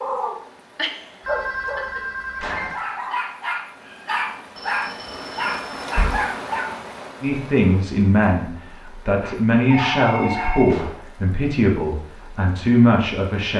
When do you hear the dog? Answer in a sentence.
The dog can be heard from 0.0 to 6.8 s and from 9.2 to 10.7 s.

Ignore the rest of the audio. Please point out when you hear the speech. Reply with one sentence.
You can hear the speech from 7.2 to 13.5 s.